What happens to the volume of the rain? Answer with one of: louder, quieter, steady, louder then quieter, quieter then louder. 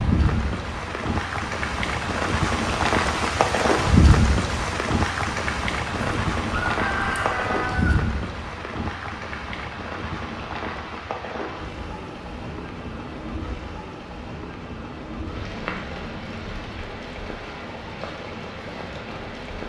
quieter.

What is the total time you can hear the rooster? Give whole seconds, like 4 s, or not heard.
2 s.